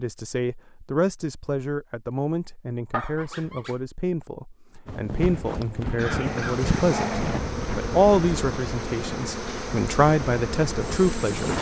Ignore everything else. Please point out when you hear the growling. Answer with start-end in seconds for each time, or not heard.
2.9-3.8, 6.0-7.4.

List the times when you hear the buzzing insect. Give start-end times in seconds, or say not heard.
6.1-11.5.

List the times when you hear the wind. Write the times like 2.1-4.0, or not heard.
4.8-11.5.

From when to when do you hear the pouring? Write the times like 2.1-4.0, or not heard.
not heard.